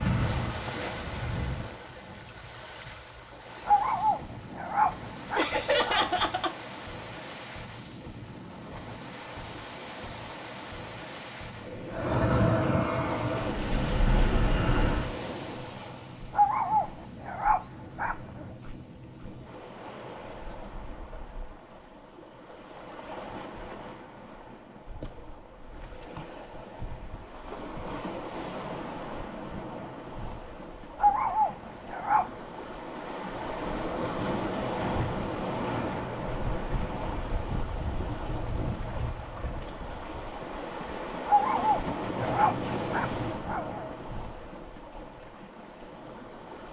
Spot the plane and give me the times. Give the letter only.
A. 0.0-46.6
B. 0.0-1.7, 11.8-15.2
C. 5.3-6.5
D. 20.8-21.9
B.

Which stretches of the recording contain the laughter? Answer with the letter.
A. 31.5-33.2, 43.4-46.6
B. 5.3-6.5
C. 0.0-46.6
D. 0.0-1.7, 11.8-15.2
B.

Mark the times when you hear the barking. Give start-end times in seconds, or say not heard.
3.6-6.2, 16.3-18.5, 30.9-32.4, 41.2-44.0.